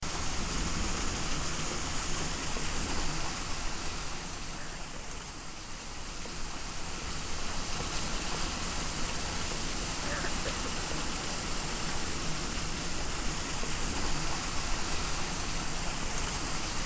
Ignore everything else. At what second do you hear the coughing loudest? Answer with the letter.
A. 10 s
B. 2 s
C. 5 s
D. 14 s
A.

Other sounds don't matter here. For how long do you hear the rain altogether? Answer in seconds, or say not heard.
17 s.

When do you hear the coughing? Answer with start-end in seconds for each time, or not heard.
4.5-5.2, 10.0-10.7.